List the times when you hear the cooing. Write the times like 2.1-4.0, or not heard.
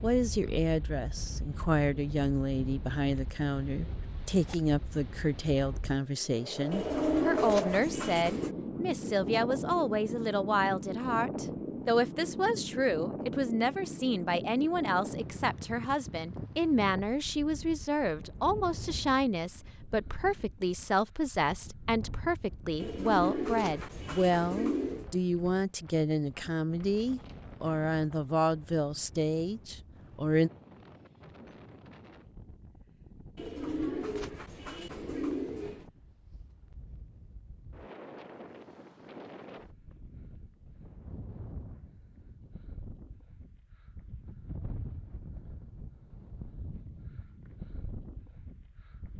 6.7-8.6, 22.8-25.1, 33.4-35.9.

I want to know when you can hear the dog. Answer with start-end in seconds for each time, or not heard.
not heard.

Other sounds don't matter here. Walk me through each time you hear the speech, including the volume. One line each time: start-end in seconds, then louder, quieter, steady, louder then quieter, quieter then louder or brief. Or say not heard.
0.0-30.5 steady.